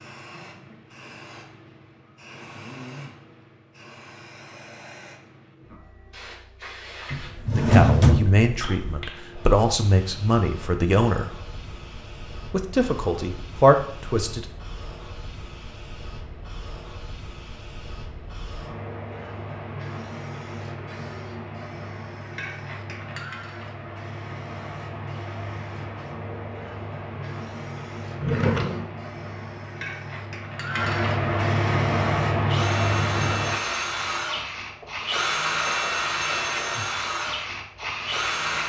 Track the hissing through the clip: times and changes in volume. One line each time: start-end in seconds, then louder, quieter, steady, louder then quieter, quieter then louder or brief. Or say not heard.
0.0-38.6 louder.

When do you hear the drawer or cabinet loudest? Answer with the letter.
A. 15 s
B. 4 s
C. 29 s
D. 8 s
D.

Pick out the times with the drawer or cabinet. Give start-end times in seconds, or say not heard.
7.1-9.0, 28.1-28.9.